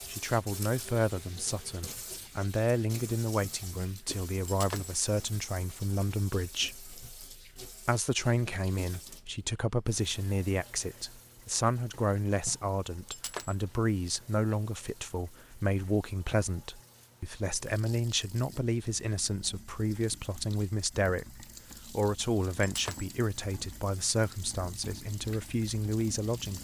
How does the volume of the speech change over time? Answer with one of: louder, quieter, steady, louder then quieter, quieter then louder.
steady.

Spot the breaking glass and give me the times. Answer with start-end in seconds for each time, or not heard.
4.5-5.0, 13.1-13.6, 22.6-23.1.